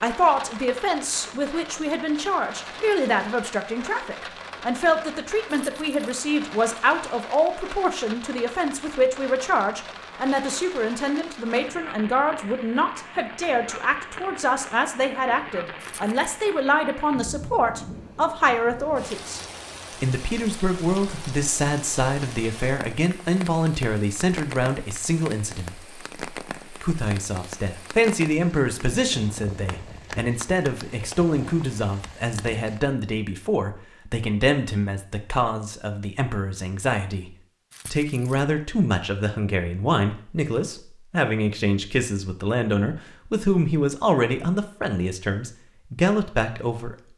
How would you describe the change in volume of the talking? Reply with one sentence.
The volume of the talking stays about the same.